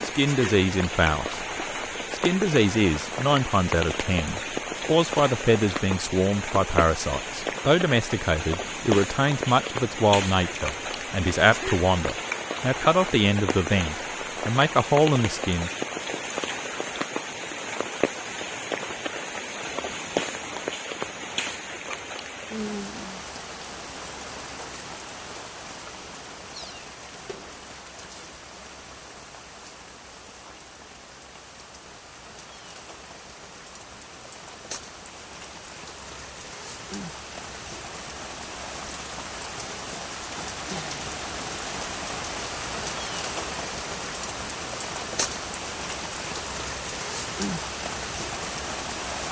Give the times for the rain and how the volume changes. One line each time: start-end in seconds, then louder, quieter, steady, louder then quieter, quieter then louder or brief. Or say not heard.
0.0-49.2 quieter then louder.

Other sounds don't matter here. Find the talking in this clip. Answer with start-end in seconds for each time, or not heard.
0.0-1.4, 2.1-15.7.